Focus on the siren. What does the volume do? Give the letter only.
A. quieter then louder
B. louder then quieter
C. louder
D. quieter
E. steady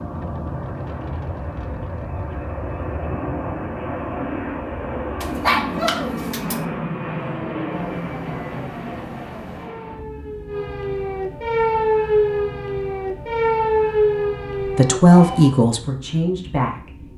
C.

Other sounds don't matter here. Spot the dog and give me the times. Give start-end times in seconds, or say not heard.
5.2-6.6.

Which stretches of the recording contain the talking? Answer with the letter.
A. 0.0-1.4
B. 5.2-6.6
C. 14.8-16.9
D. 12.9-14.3
C.